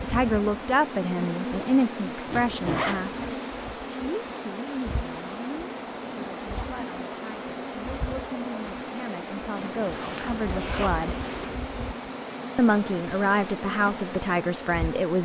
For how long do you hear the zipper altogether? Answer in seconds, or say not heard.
3 s.